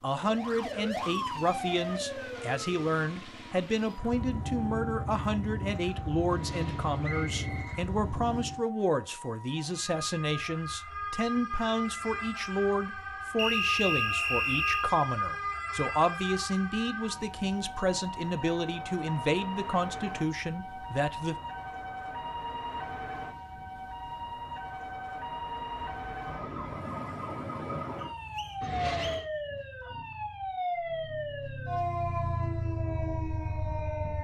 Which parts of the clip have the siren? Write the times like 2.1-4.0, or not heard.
0.1-34.1.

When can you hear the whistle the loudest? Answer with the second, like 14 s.
14 s.